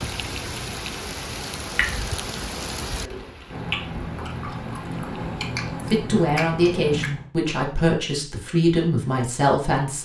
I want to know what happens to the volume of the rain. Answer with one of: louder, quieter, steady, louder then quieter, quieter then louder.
quieter.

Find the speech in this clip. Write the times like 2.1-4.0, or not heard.
5.8-9.9.